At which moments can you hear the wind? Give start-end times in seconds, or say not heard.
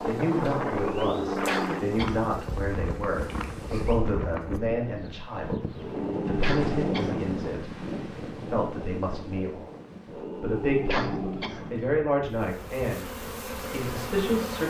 0.0-14.6.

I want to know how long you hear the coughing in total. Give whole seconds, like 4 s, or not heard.
3 s.